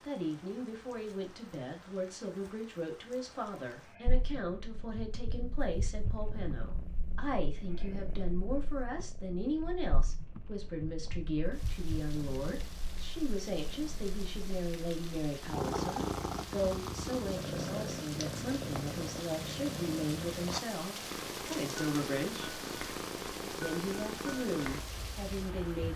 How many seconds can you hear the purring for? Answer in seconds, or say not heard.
22 s.